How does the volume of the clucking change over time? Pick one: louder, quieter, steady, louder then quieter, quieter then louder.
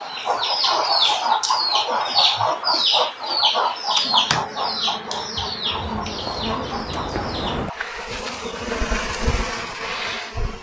quieter.